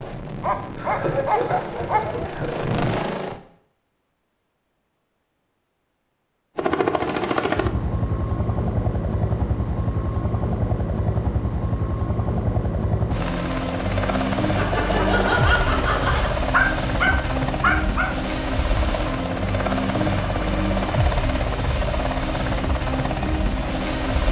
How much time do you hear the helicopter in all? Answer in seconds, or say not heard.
21 s.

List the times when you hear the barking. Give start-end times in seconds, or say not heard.
0.4-2.3, 16.1-18.1.